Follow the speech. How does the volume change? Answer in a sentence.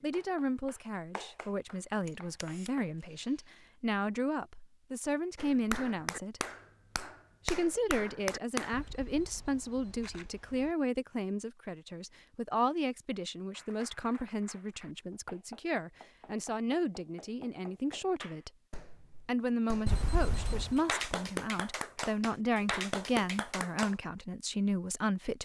The volume of the speech stays about the same.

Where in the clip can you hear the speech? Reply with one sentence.
You can hear the speech from 0.0 to 6.4 s, from 7.5 to 18.5 s and from 19.2 to 25.3 s.